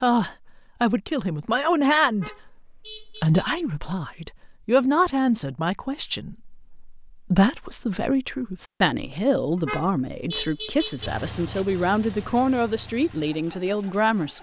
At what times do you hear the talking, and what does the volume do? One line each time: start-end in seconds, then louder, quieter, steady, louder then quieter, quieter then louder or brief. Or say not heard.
0.0-14.3 steady.